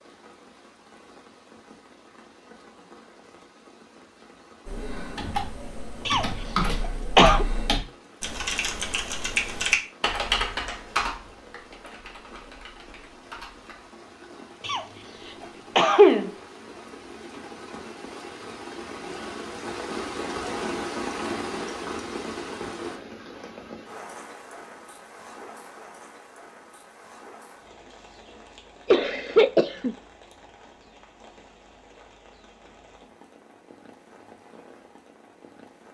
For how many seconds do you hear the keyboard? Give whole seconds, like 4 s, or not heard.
9 s.